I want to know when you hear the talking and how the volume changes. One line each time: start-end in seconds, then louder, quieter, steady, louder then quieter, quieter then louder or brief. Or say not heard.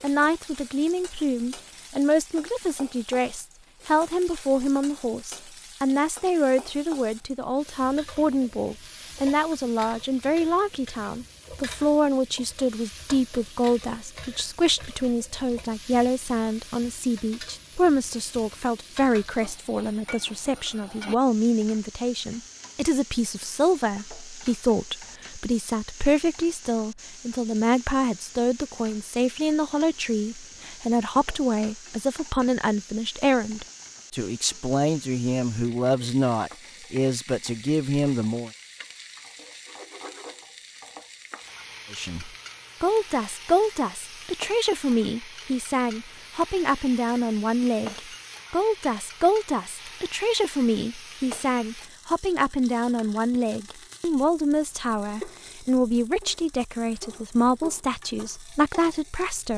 0.0-38.5 steady
41.9-59.5 steady.